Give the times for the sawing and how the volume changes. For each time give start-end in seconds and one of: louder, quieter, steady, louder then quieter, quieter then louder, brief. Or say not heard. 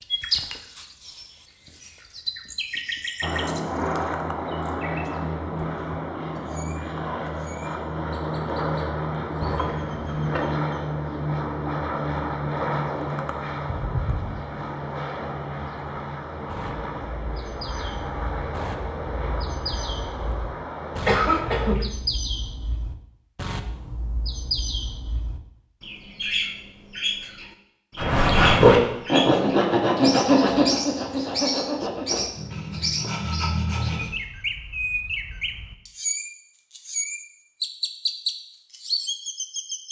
27.9-34.1 quieter.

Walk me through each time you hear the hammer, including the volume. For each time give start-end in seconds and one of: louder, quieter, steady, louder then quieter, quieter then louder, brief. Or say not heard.
not heard.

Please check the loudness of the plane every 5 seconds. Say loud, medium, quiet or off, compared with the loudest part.
loud, loud, loud, medium, medium, off, off, off.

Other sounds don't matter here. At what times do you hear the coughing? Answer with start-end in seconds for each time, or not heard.
9.4-10.4, 21.1-21.9.